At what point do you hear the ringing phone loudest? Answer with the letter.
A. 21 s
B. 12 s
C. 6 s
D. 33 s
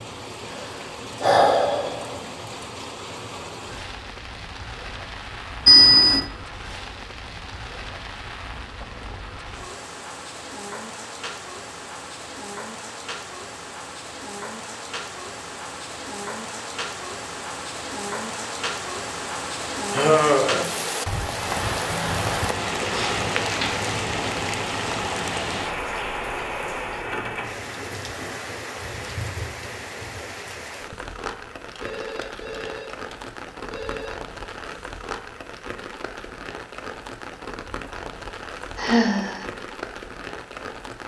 C.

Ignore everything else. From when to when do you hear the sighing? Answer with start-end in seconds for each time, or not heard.
0.6-2.2, 19.9-20.7, 38.8-39.5.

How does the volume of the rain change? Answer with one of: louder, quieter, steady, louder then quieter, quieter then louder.
louder then quieter.